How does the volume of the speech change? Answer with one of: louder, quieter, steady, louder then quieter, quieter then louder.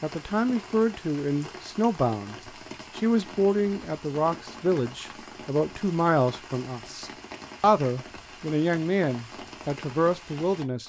steady.